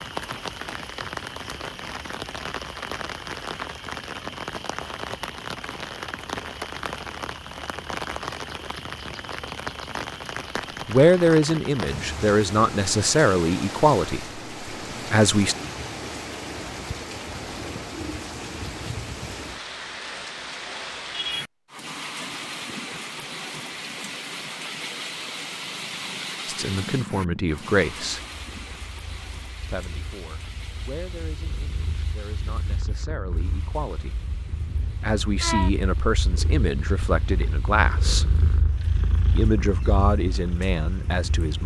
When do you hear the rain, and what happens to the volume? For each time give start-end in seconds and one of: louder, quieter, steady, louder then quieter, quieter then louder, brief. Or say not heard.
0.0-41.6 quieter.